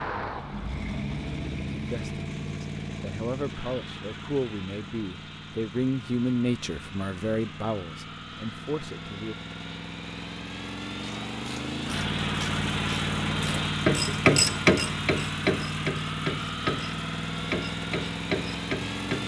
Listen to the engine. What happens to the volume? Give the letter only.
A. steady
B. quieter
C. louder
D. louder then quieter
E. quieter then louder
E.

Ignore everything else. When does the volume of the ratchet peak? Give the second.
14 s.